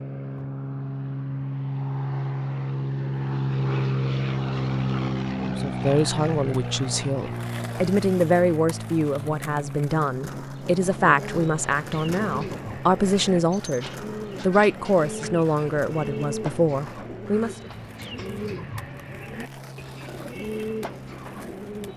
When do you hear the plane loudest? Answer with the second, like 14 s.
4 s.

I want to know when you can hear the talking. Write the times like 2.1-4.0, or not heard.
5.4-17.7.